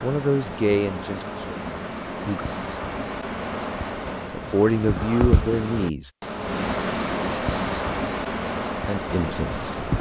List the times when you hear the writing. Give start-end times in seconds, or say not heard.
0.0-9.9.